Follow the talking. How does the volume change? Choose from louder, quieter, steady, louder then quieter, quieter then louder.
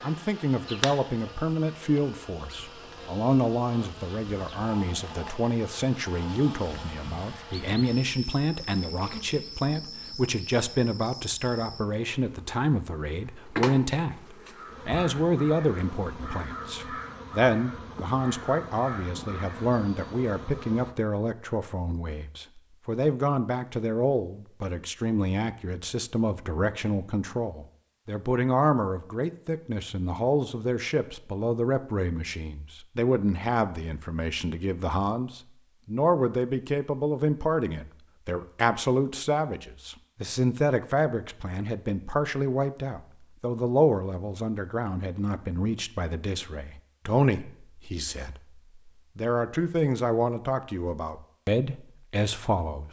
steady.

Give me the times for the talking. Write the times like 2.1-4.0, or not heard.
0.0-52.8.